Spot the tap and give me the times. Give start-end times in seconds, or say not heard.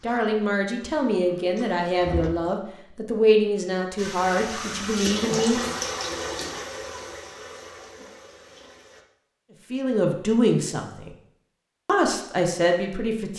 0.0-2.3, 4.0-9.1.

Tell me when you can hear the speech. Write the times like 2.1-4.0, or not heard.
0.0-5.6, 9.7-11.1, 11.8-13.3.